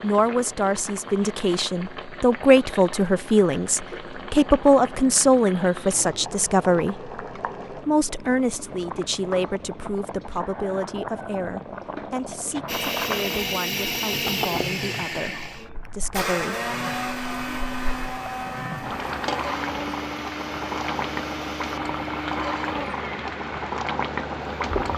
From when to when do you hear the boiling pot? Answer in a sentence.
You can hear the boiling pot from 0.0 to 24.9 s.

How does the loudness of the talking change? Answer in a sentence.
The loudness of the talking goes down.